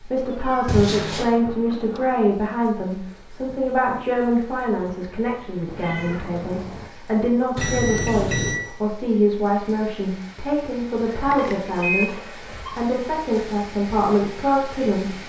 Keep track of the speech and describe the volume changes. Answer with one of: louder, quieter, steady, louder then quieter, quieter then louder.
steady.